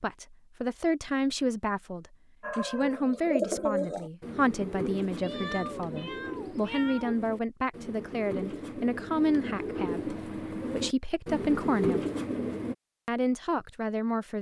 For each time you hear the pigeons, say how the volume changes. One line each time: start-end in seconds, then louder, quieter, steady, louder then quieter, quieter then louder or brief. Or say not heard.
2.4-12.8 quieter then louder.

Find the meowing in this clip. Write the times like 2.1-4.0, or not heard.
5.2-7.2.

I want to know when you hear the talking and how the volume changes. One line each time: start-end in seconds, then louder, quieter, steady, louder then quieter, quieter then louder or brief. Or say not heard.
0.0-12.1 steady
13.1-14.3 brief.